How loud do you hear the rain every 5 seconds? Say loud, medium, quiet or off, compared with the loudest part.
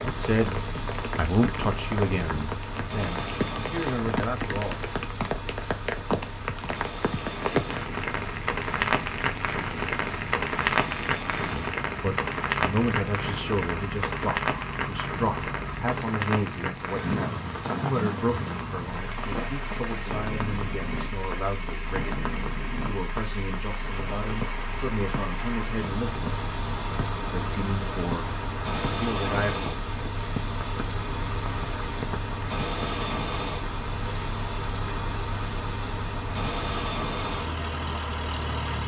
medium, loud, loud, medium, medium, medium, medium, medium.